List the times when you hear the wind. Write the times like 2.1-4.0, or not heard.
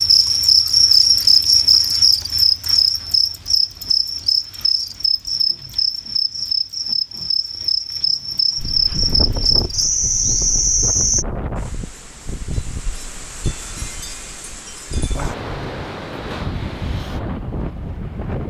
8.6-18.4.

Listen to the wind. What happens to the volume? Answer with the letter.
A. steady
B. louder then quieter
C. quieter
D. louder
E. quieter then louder
A.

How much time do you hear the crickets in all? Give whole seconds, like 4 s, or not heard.
11 s.